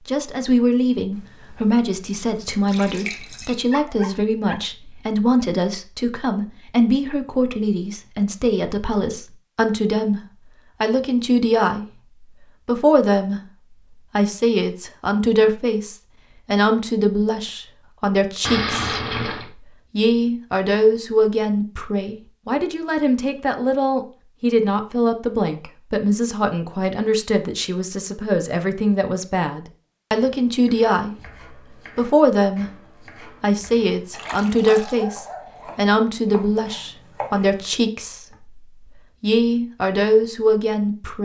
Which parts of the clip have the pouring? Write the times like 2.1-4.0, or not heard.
1.1-3.6, 18.4-19.5, 34.1-35.0.